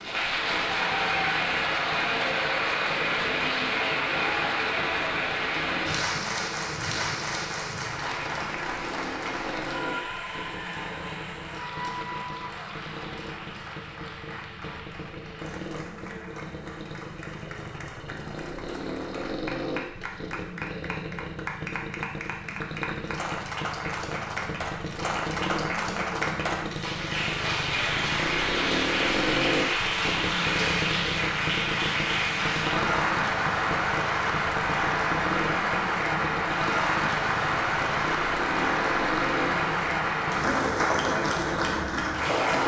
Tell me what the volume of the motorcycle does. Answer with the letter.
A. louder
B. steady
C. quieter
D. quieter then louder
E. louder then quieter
A.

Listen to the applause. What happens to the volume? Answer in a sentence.
The loudness of the applause goes down, then up.